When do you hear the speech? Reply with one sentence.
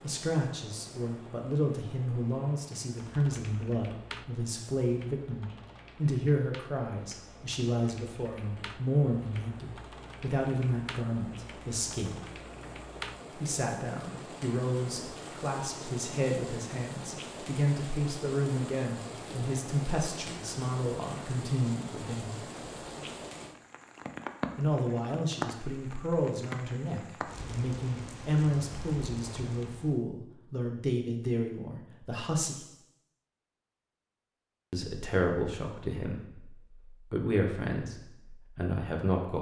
You can hear the speech from 0.0 to 12.2 s, from 13.3 to 22.4 s, from 24.6 to 32.6 s and from 34.7 to 39.3 s.